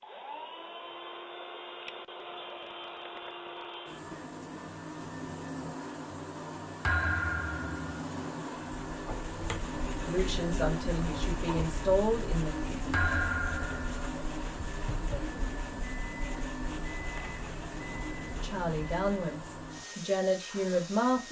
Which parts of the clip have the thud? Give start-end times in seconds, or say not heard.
6.8-7.8, 12.9-13.9.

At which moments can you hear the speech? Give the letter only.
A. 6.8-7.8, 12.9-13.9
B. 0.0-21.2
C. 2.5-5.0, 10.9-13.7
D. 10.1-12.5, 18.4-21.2
D.